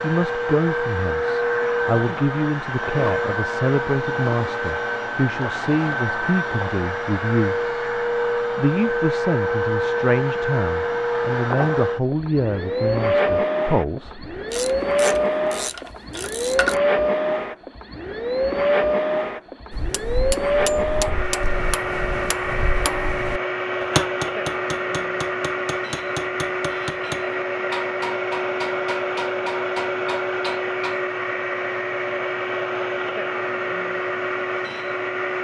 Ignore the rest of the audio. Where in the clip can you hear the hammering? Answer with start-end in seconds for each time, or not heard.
19.7-31.0.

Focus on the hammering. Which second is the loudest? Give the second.
24 s.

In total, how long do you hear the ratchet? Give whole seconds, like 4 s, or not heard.
2 s.